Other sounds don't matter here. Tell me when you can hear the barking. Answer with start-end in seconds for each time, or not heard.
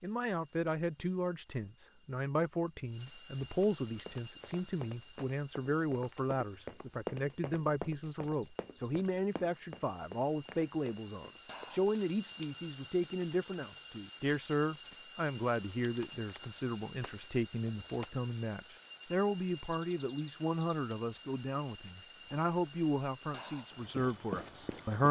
not heard.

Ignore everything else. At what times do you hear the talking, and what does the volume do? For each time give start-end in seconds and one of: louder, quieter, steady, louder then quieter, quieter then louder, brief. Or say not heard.
0.0-25.0 steady.